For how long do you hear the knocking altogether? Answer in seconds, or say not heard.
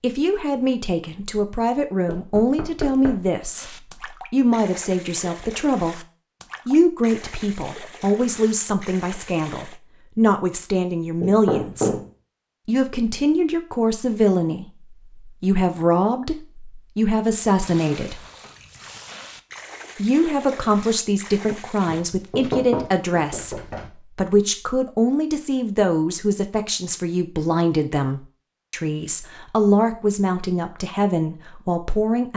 4 s.